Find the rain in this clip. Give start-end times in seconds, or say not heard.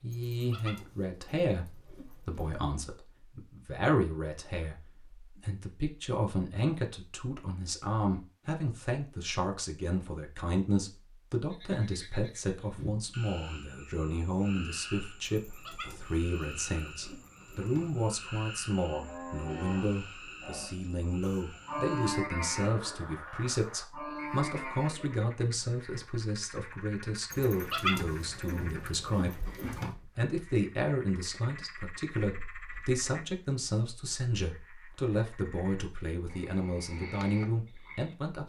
not heard.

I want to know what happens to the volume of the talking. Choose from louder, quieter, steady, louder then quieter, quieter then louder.
steady.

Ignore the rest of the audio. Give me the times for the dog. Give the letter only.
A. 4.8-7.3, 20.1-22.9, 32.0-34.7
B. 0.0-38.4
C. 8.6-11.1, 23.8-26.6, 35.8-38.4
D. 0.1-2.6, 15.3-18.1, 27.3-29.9
D.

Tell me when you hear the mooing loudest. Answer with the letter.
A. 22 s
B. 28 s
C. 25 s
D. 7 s
A.